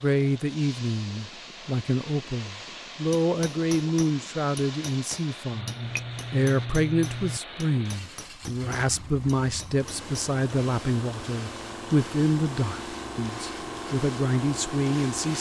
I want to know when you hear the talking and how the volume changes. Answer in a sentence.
You can hear the talking from 0.0 to 15.3 s, at a steady volume.